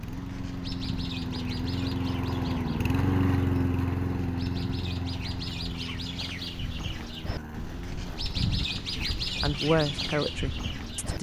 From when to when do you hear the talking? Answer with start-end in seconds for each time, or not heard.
9.4-11.1.